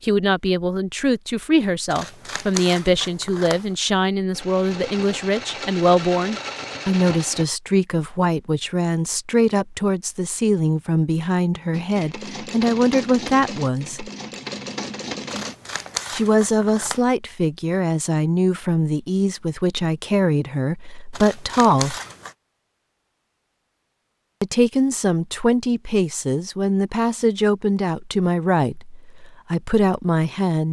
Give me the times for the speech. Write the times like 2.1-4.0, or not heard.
0.0-14.1, 16.1-21.9, 24.4-30.6.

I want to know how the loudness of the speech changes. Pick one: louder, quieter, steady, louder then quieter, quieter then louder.
steady.